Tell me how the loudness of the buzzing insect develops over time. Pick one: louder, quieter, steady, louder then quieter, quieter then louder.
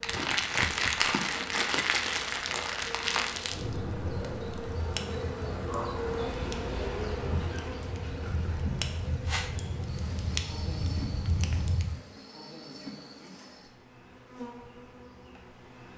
louder then quieter.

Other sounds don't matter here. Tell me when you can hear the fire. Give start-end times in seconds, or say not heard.
0.0-12.0.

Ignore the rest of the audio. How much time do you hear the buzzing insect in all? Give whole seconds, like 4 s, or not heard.
16 s.